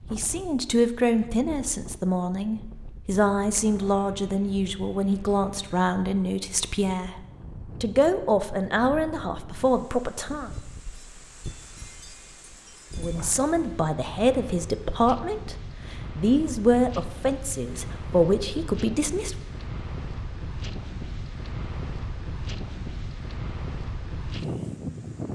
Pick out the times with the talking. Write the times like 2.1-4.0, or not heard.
0.1-10.5, 12.9-15.6, 16.1-19.4.